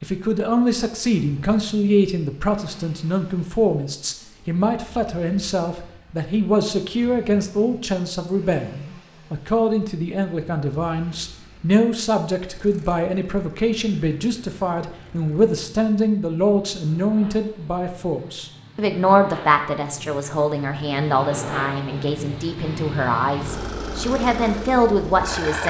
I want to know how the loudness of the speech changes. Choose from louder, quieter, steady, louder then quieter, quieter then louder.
steady.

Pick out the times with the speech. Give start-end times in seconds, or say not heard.
0.0-25.6.